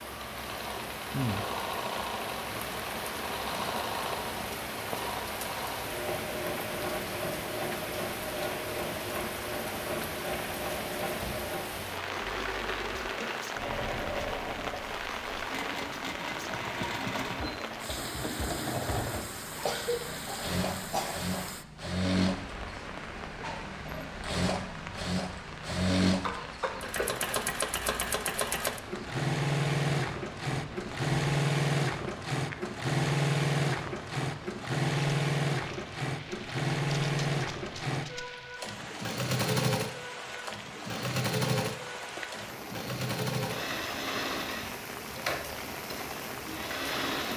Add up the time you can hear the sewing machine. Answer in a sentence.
You can hear the sewing machine for 47 seconds altogether.